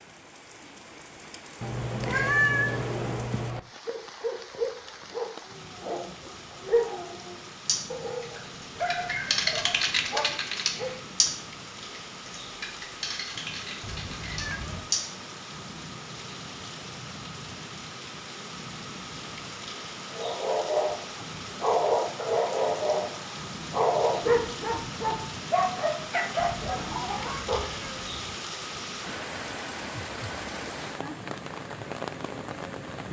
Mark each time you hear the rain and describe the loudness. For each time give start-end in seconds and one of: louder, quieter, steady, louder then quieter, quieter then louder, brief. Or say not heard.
0.0-33.0 louder.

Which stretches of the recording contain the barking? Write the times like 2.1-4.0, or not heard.
3.9-11.0, 20.1-27.6.